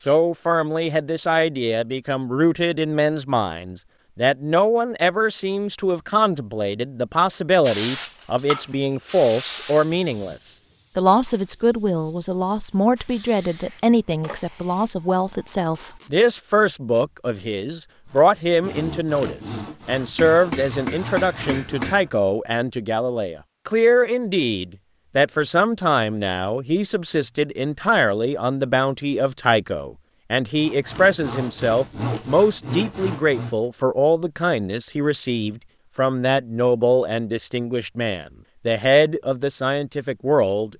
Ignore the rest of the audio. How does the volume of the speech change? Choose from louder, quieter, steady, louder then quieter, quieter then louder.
steady.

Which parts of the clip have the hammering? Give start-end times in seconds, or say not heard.
20.1-22.1.